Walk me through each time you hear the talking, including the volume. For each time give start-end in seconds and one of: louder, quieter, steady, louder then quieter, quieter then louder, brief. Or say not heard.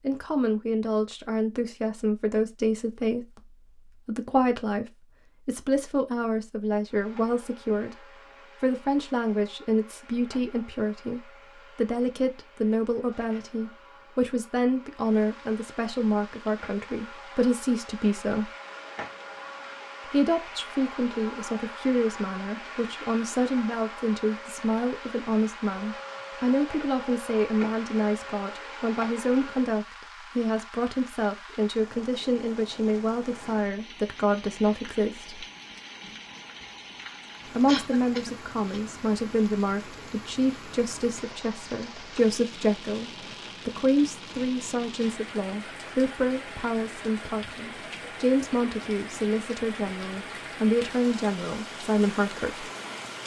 0.0-18.5 steady
20.1-35.5 steady
37.5-52.6 steady.